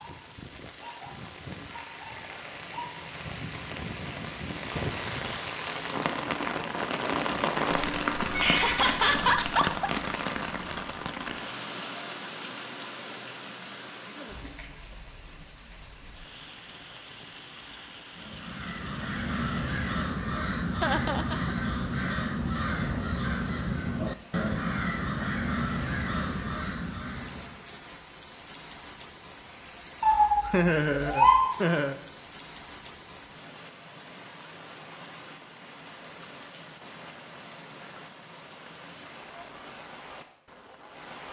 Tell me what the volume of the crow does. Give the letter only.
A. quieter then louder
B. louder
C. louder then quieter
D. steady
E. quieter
D.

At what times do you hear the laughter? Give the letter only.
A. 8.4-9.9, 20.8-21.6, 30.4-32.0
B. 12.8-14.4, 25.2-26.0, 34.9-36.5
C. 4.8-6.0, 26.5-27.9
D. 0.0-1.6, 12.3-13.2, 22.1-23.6
A.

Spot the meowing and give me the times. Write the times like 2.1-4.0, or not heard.
8.3-9.4, 30.0-31.4.